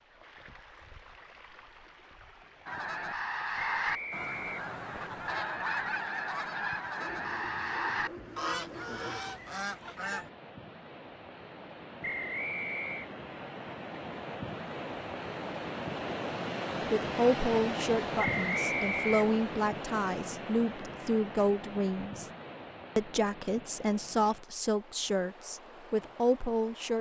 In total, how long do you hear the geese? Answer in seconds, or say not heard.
8 s.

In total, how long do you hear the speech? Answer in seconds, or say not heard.
9 s.